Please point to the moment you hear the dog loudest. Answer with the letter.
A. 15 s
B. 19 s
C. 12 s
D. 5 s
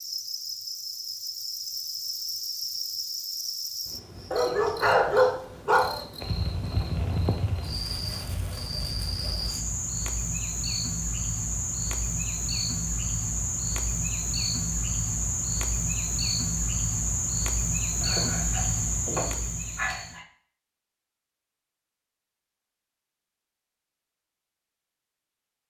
D.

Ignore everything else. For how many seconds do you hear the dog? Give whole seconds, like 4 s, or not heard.
4 s.